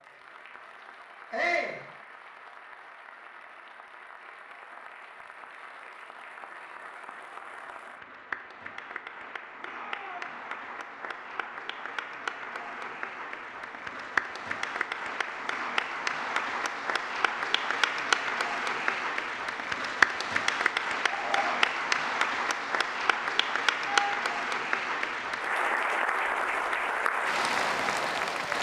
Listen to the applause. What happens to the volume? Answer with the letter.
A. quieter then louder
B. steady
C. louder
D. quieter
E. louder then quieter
C.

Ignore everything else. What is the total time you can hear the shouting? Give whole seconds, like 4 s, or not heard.
2 s.